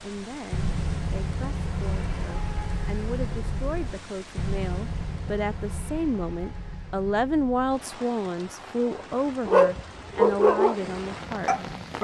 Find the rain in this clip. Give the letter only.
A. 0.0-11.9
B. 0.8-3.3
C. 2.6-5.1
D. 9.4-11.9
A.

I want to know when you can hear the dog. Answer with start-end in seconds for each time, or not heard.
9.4-11.9.